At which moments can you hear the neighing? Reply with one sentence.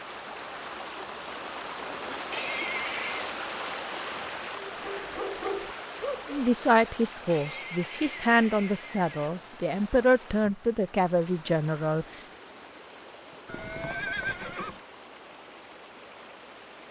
The neighing can be heard from 2.3 to 3.3 s, from 7.2 to 9.3 s and from 13.4 to 14.8 s.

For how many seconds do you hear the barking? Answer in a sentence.
The barking can be heard for 2 seconds in total.